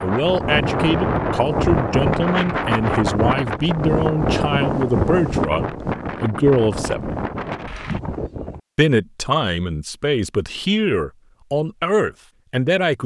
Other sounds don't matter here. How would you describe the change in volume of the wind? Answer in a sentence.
The loudness of the wind goes down.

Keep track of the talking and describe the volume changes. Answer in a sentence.
The volume of the talking stays about the same.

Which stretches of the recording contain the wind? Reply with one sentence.
You can hear the wind from 0.0 to 8.6 s.